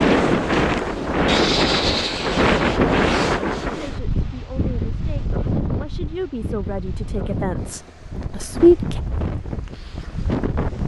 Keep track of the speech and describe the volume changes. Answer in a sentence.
The loudness of the speech goes up, then down.